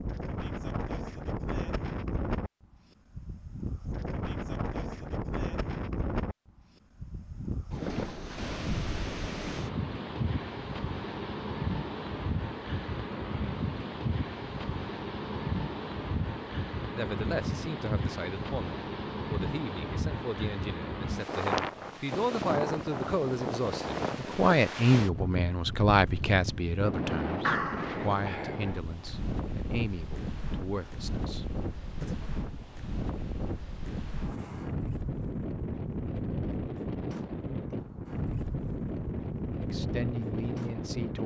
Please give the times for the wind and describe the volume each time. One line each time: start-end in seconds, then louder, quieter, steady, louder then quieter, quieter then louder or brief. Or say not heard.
0.0-41.2 steady.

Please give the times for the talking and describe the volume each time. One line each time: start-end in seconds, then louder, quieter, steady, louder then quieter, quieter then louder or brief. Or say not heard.
16.9-32.2 louder then quieter
39.5-41.2 brief.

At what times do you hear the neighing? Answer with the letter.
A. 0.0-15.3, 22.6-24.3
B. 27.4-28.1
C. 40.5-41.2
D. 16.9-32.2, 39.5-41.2
B.